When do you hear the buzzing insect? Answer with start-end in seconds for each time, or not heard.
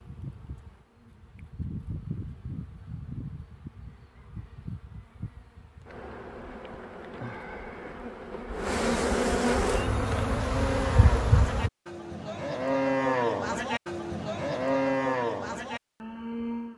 0.0-11.7.